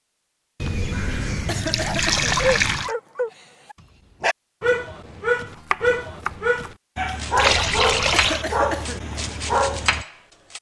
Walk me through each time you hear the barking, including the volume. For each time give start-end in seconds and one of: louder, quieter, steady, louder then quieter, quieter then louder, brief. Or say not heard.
1.8-10.1 steady.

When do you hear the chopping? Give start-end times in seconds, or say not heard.
5.5-10.5.